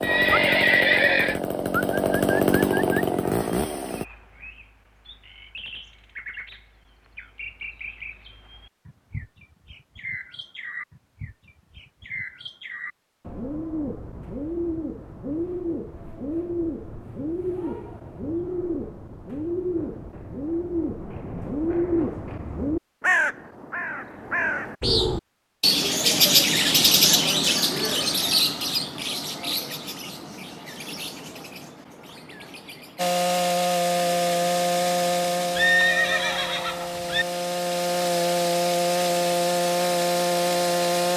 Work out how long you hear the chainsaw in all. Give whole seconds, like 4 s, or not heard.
12 s.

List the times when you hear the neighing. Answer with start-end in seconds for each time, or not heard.
0.0-1.4, 35.5-37.2.